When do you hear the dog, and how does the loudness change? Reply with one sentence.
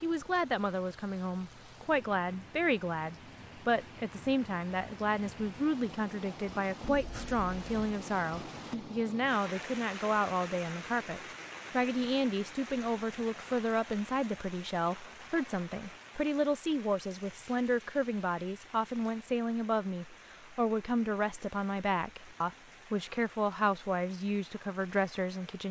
The dog can't be heard in this clip.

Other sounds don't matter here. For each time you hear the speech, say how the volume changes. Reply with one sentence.
You can hear the speech from 0.0 to 25.6 s, at a steady volume.